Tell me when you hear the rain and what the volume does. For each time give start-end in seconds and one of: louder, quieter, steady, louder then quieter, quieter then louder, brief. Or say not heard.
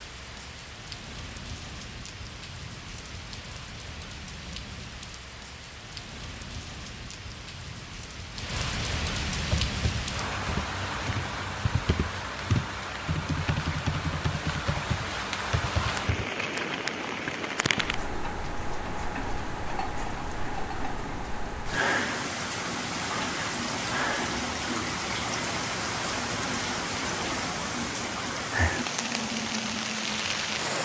0.0-30.8 louder.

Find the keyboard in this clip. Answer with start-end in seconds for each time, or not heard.
9.4-16.3.